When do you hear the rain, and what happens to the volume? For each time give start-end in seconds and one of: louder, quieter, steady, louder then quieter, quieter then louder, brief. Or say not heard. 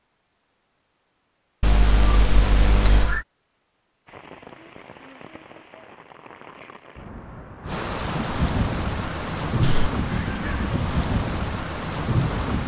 4.0-12.6 louder.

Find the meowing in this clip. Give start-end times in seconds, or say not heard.
1.6-3.2, 9.6-10.7.